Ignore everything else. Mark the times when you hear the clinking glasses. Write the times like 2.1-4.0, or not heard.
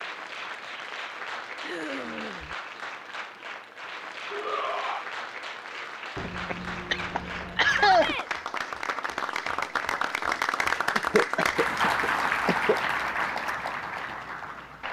not heard.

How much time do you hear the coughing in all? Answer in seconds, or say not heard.
5 s.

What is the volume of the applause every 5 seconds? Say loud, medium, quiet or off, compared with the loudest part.
medium, medium, loud.